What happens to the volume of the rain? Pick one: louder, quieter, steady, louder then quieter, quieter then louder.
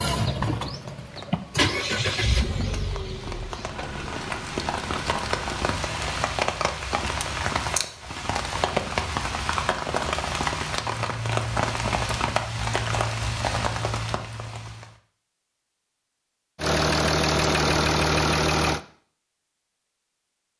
louder.